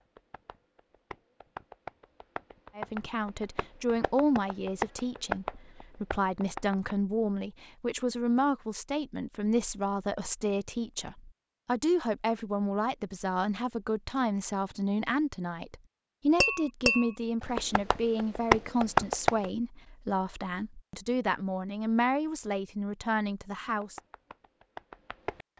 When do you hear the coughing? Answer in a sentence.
The coughing can't be heard in this clip.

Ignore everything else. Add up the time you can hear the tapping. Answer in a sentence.
The tapping can be heard for 12 seconds in total.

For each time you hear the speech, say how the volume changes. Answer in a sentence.
The speech can be heard from 2.8 to 24.0 s, at a steady volume.